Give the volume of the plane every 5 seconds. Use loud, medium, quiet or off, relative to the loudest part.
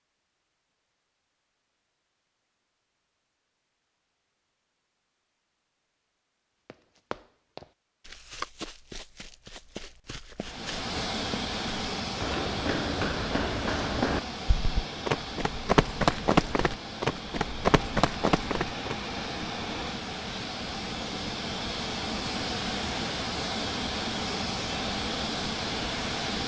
off, off, loud, medium, loud, loud.